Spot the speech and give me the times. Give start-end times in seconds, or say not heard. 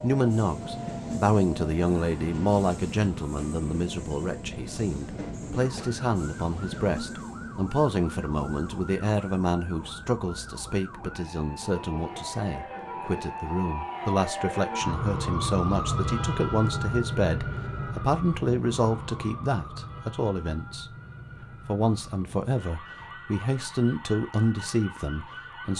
0.0-25.7.